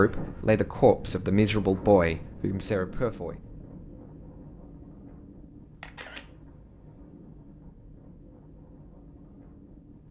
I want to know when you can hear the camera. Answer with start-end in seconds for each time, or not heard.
5.8-6.2.